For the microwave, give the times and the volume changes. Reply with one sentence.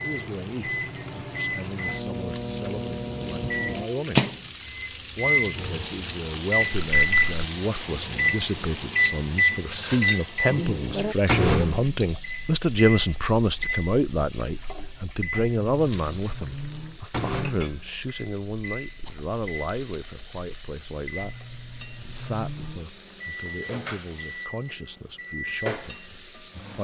The microwave can be heard from 0.0 to 26.7 s, getting quieter.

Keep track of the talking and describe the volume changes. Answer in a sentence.
The volume of the talking goes up, then down.